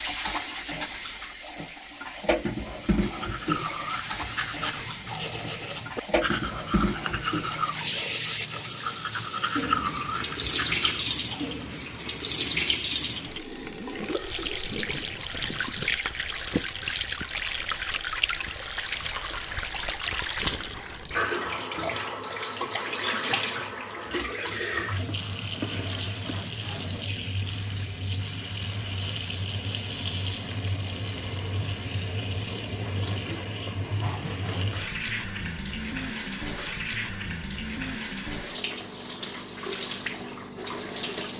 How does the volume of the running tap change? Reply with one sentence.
The volume of the running tap stays about the same.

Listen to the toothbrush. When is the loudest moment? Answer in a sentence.
The loudest moment of the toothbrush is at 10 seconds.